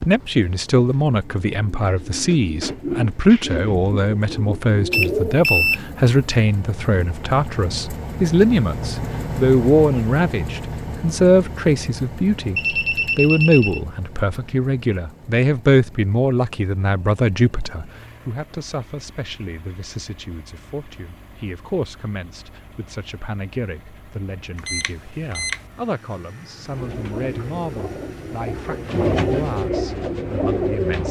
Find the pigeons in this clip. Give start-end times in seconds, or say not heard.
0.0-5.4, 26.6-31.0.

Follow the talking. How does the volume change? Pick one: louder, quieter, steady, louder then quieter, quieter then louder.
quieter.